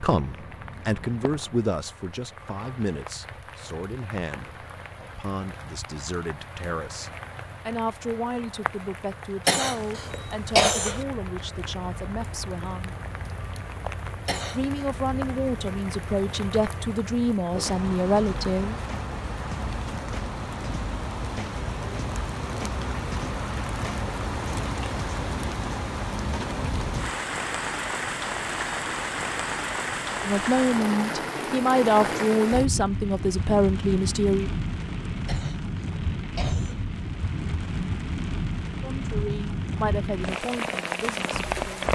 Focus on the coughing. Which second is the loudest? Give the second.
11 s.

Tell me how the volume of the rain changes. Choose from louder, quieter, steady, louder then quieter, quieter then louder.
louder.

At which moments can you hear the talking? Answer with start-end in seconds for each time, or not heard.
0.0-12.9, 14.5-18.8, 30.2-34.5, 38.8-41.8.